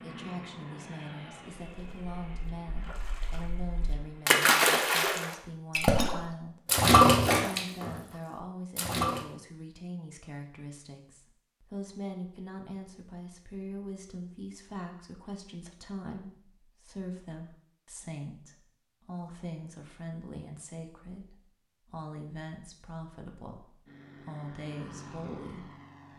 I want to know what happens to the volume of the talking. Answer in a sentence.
The volume of the talking stays about the same.